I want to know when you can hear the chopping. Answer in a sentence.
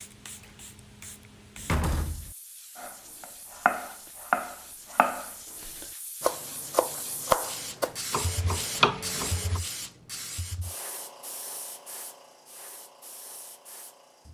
The chopping can be heard from 2.8 to 9.6 s.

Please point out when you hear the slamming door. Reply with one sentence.
The slamming door can be heard from 1.6 to 2.4 s.